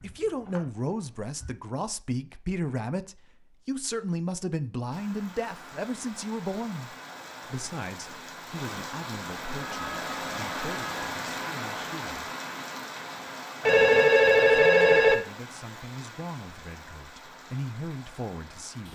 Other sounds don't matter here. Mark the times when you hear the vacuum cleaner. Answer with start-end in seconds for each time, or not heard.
not heard.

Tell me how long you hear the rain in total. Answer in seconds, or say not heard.
14 s.